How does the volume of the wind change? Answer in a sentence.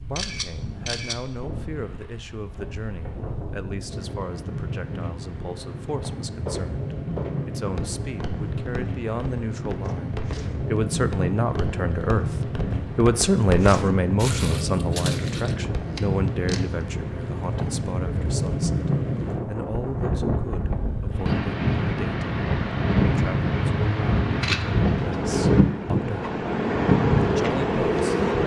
The volume of the wind goes up.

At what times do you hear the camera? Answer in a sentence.
The camera can be heard from 0.1 to 1.2 s, from 15.4 to 16.6 s and from 22.9 to 24.9 s.